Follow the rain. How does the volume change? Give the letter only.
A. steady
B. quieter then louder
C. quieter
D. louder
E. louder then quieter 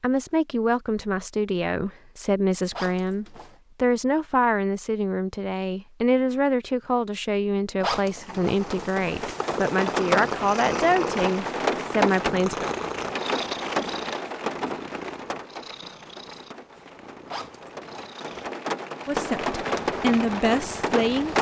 B.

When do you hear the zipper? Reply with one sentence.
You can hear the zipper from 2.7 to 3.6 s, from 7.8 to 9.4 s and from 17.2 to 18.1 s.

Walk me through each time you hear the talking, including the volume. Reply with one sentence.
You can hear the talking from 0.0 to 12.7 s, at a steady volume; and briefly from 19.1 to 21.3 s.